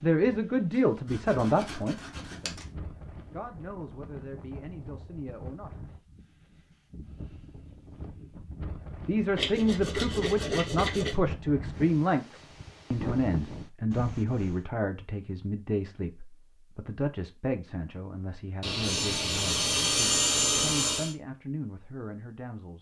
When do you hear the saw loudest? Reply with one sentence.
The loudest moment of the saw is at 20 seconds.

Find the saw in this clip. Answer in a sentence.
You can hear the saw from 1.1 to 2.6 s, from 9.3 to 11.2 s and from 18.6 to 21.1 s.